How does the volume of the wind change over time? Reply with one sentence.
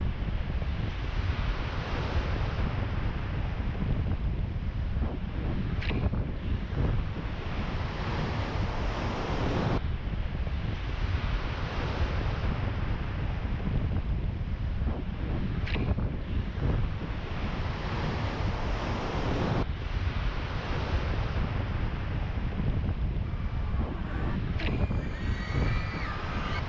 The loudness of the wind stays about the same.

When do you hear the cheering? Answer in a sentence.
The cheering can be heard from 23.2 to 26.6 s.